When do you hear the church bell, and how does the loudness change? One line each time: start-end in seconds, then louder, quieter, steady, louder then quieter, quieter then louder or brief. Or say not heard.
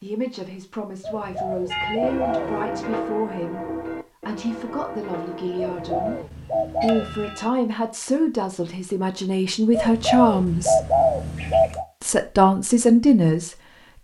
1.7-7.5 quieter.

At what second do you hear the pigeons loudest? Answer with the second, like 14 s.
11 s.